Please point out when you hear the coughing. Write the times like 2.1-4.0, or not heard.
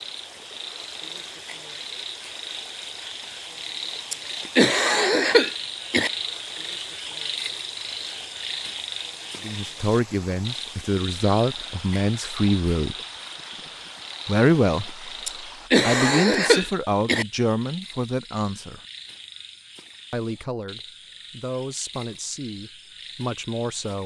4.1-6.1, 15.2-17.2.